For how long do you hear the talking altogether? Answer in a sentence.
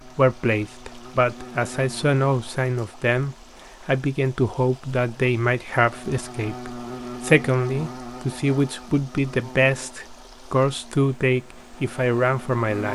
The talking can be heard for 13 seconds in total.